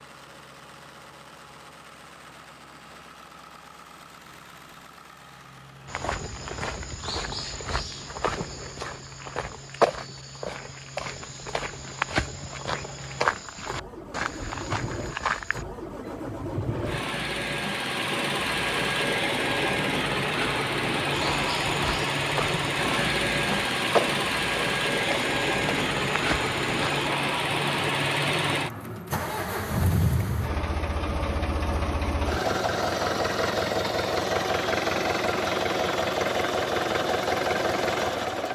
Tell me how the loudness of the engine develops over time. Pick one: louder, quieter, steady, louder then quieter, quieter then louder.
louder.